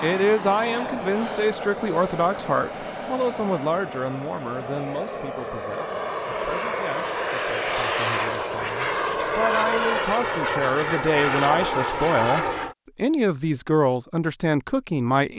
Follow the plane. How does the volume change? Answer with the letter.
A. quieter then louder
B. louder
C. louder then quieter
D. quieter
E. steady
B.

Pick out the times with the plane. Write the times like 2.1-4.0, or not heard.
0.0-12.8.